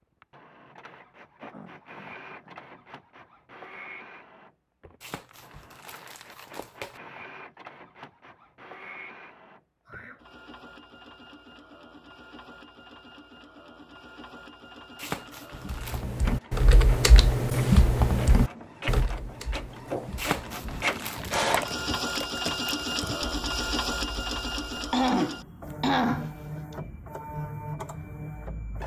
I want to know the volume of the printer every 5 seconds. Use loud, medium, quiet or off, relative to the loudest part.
quiet, quiet, quiet, medium, loud, medium.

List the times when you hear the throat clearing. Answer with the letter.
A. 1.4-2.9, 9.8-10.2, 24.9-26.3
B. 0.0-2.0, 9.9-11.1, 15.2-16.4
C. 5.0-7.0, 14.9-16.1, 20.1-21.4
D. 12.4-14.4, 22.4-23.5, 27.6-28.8
A.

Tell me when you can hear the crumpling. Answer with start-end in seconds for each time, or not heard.
5.0-7.0, 14.9-16.1, 20.1-21.4.